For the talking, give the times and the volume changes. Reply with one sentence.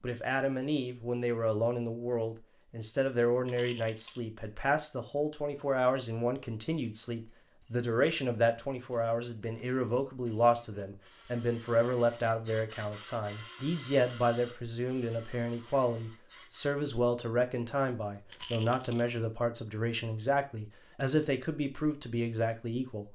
You can hear the talking from 0.0 to 23.1 s, at a steady volume.